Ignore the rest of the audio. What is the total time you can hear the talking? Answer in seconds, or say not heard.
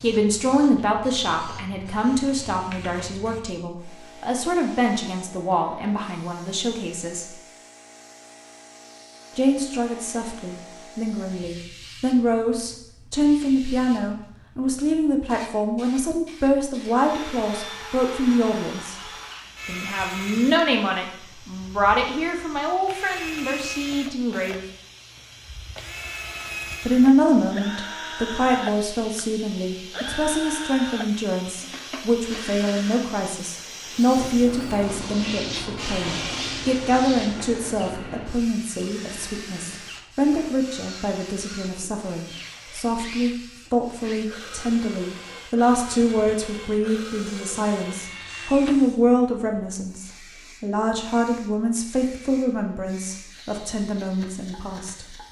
50 s.